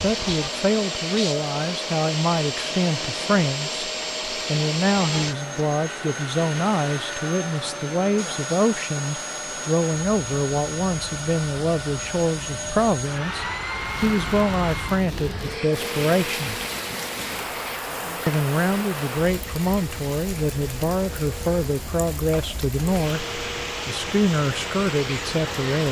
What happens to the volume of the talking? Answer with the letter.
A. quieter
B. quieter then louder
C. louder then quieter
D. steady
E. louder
D.